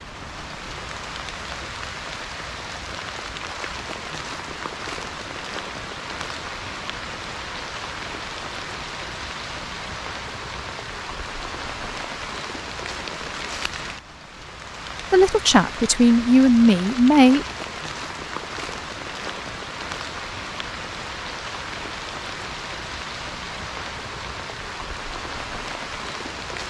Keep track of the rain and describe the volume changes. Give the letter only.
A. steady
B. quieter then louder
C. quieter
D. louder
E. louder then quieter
A.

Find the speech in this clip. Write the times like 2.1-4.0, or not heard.
15.1-17.4.